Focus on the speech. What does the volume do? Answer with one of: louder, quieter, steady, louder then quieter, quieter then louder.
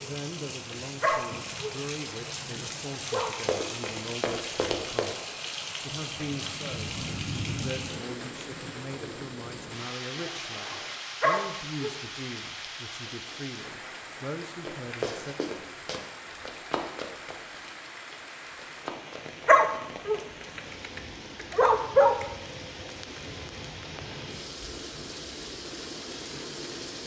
steady.